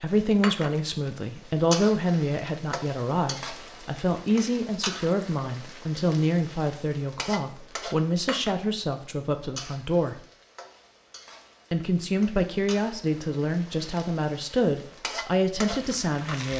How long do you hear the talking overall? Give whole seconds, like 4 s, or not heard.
15 s.